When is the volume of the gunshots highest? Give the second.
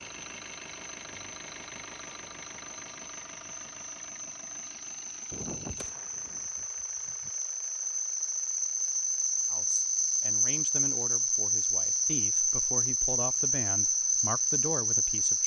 6 s.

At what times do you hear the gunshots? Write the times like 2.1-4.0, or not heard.
5.3-7.3.